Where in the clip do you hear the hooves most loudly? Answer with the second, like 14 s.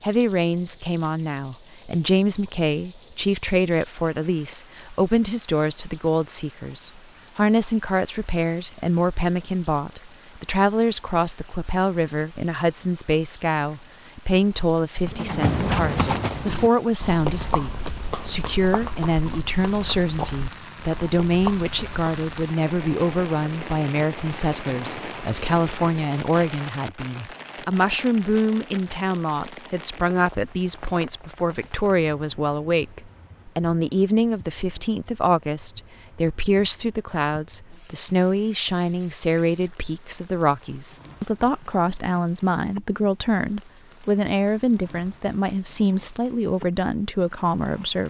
16 s.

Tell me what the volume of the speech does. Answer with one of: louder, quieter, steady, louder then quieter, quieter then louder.
steady.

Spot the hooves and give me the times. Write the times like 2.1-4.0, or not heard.
15.1-22.3.